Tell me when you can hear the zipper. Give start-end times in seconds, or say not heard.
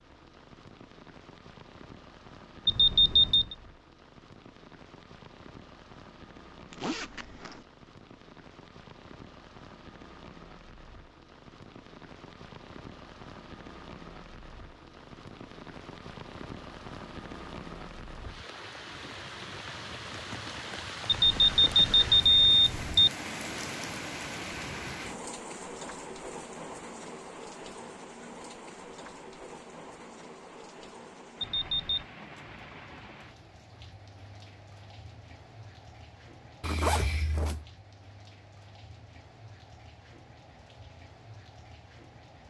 6.7-7.7, 36.6-37.6.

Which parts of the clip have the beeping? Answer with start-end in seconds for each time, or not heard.
2.6-3.5, 21.1-23.1, 31.4-32.0.